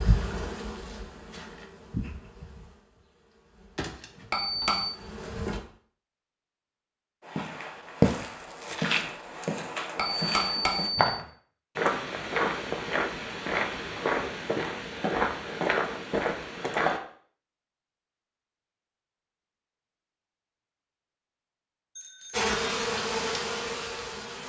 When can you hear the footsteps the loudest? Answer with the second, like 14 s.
8 s.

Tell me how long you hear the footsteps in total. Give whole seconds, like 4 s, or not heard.
10 s.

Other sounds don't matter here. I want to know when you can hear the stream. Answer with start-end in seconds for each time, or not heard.
not heard.